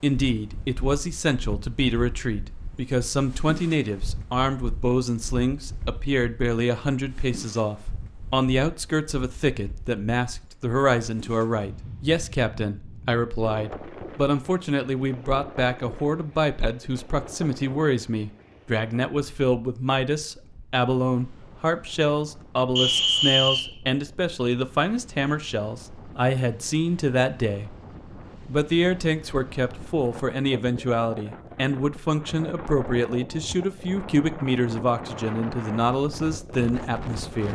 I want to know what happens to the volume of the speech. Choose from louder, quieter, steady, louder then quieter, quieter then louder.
steady.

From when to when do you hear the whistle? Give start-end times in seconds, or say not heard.
22.8-23.7.